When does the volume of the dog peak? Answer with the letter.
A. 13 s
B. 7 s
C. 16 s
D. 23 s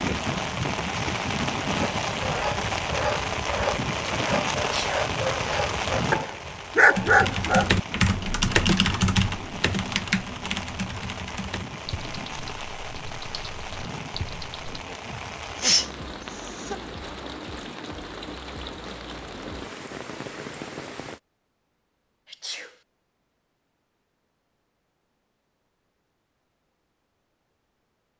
B.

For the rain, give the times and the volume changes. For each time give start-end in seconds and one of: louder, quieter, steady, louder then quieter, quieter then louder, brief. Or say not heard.
0.0-21.2 quieter.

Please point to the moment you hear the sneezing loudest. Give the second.
16 s.